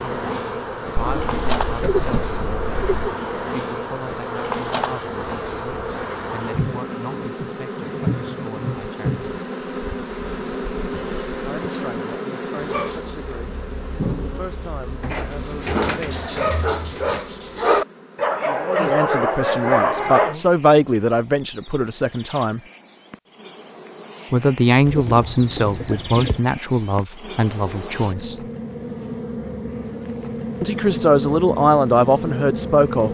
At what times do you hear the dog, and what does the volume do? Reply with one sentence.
You can hear the dog from 12.6 to 20.4 s, getting louder.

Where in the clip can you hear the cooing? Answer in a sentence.
The cooing can be heard from 0.9 to 3.1 s, from 15.0 to 17.2 s and from 24.9 to 26.4 s.